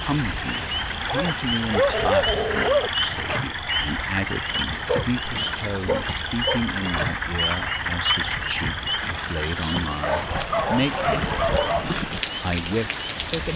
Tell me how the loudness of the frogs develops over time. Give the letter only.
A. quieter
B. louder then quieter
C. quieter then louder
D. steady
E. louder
A.